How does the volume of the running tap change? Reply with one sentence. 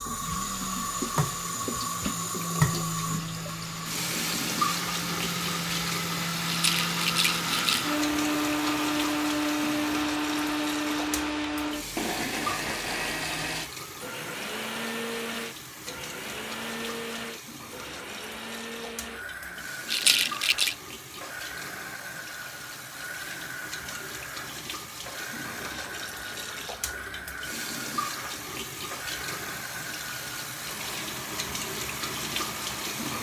The loudness of the running tap goes down, then up.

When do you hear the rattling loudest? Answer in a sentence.
The volume of the rattling peaks at 20 seconds.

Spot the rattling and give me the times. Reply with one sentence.
You can hear the rattling from 6.5 to 7.8 s and from 19.9 to 20.8 s.